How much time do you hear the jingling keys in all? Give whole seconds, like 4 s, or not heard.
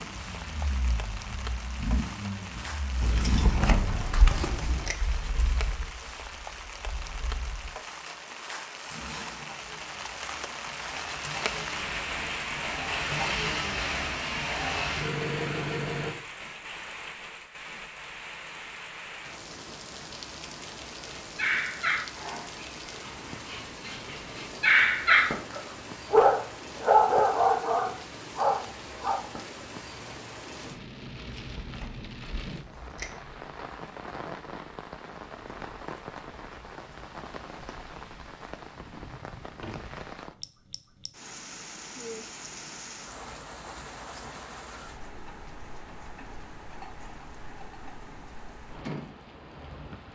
4 s.